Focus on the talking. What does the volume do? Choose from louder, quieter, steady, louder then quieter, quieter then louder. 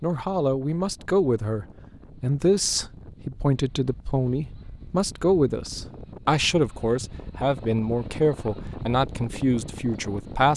steady.